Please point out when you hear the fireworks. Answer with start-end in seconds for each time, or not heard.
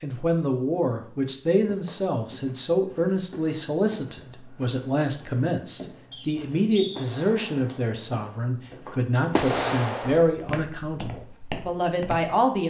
7.0-8.2, 9.3-10.3.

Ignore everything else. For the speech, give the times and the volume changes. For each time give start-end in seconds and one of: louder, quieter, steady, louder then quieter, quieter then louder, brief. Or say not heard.
0.0-12.6 steady.